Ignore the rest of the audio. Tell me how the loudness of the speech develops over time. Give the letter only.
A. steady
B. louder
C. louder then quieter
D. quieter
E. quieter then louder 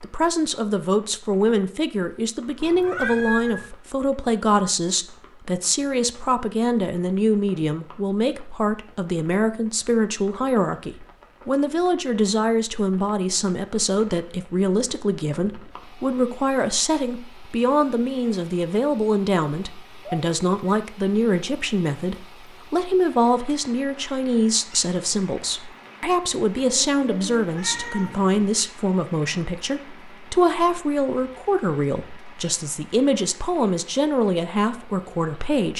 A.